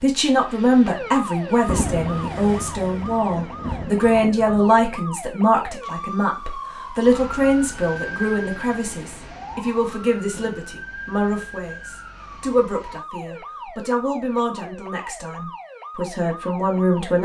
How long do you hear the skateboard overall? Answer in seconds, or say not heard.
not heard.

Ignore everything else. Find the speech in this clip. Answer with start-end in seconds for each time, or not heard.
0.0-17.1.